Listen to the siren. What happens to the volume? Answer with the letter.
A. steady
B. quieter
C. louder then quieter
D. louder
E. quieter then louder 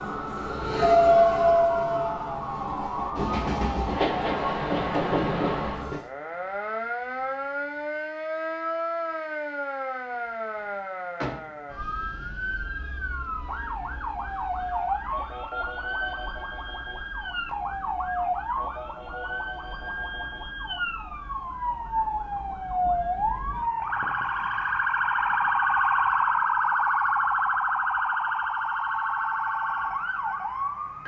D.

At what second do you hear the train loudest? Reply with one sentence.
The loudest moment of the train is at 1 second.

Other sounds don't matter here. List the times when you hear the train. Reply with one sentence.
You can hear the train from 0.0 to 6.0 s.